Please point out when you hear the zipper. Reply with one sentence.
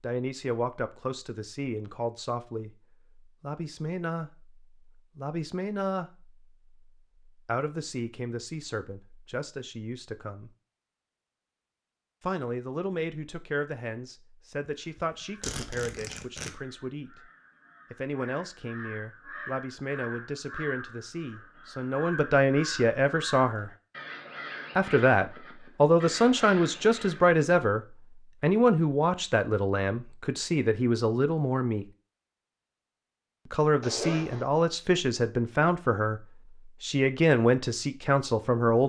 You can hear the zipper from 15.4 to 16.5 s and from 33.8 to 34.5 s.